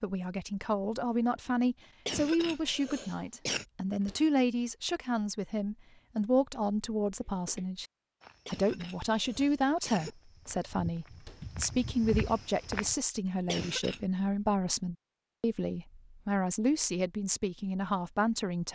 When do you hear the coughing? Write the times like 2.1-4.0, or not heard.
2.0-3.6, 8.4-10.2, 13.2-14.0.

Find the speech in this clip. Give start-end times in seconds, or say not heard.
0.0-7.8, 8.4-18.7.